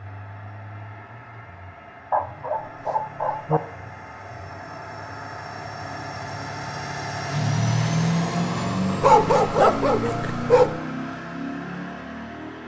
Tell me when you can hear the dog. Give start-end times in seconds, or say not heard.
2.1-3.6, 9.0-10.7.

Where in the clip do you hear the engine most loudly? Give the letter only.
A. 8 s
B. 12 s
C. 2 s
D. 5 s
A.